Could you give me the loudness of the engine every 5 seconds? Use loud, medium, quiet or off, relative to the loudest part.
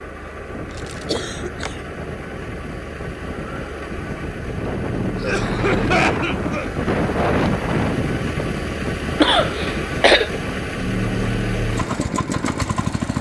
medium, loud, loud.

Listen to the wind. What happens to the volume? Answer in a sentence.
The loudness of the wind goes up, then down.